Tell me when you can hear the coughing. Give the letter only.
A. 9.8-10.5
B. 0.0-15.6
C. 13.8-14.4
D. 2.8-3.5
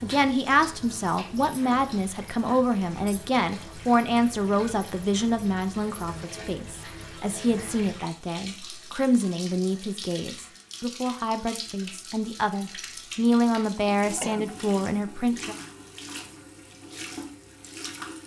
C.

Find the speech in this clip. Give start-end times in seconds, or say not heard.
0.0-15.6.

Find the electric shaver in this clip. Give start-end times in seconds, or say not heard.
not heard.